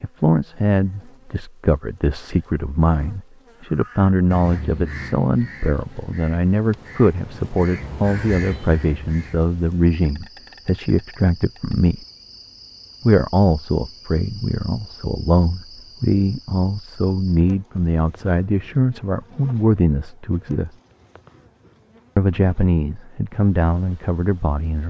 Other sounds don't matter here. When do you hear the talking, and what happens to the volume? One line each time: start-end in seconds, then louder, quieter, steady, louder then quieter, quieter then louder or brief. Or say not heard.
0.0-12.1 steady
13.0-20.8 steady
22.1-24.8 brief.